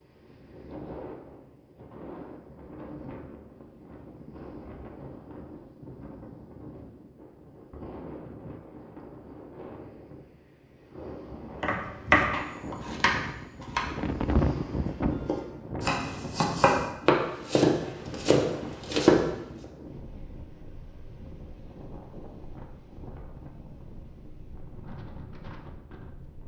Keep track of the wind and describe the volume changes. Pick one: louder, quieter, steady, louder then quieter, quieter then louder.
louder then quieter.